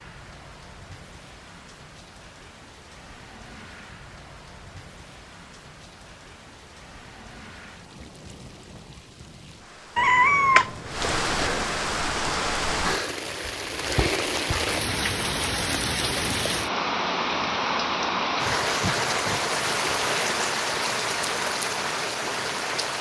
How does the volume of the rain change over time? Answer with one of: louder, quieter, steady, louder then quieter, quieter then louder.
louder.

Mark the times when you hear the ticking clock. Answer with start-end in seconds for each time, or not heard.
not heard.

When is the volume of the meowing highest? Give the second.
10 s.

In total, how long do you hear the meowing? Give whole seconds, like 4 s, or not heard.
2 s.